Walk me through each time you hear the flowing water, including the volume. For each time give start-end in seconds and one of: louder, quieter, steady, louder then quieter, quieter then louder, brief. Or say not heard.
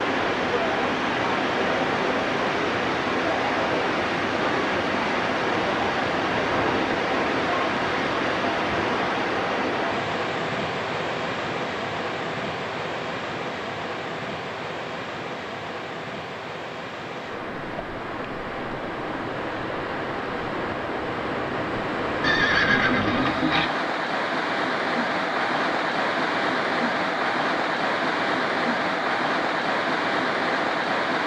0.0-31.2 quieter then louder.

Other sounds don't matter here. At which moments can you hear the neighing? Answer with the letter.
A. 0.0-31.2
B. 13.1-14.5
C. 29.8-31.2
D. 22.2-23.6
D.